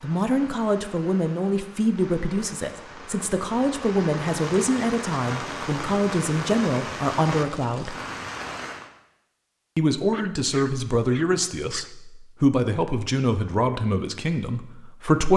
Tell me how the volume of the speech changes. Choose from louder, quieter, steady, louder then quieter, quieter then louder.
steady.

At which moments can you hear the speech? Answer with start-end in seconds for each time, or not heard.
0.0-8.0, 9.8-15.3.